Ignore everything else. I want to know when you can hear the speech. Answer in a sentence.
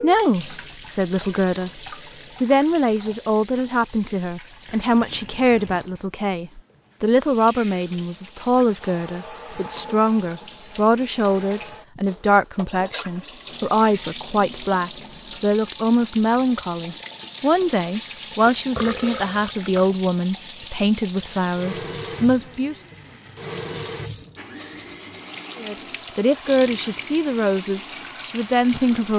You can hear the speech from 0.0 to 1.8 s, from 2.4 to 22.8 s and from 25.6 to 29.1 s.